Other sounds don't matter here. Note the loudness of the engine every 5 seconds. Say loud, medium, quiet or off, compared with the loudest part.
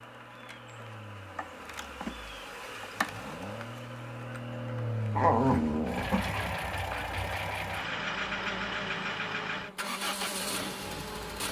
medium, loud, loud.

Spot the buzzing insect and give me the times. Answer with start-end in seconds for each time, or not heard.
0.0-11.4.